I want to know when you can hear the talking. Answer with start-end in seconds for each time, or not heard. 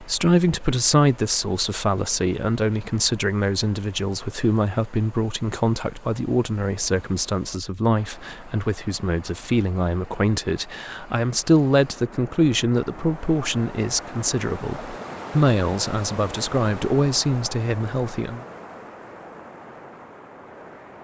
0.0-18.4.